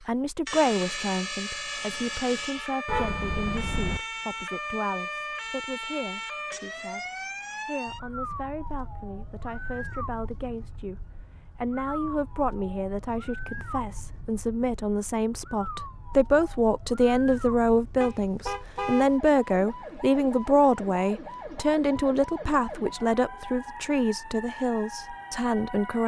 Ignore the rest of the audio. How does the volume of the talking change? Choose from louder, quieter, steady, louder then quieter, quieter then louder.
quieter then louder.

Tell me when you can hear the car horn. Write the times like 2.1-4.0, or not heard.
2.9-4.0, 18.0-19.2.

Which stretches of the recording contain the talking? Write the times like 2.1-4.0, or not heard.
0.1-26.0.